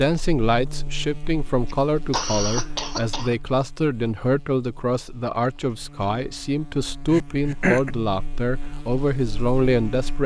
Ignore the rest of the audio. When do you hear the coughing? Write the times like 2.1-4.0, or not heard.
1.6-3.4, 7.1-7.9.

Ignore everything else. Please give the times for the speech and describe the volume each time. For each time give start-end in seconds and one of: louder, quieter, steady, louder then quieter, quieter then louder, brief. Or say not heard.
0.0-10.2 steady.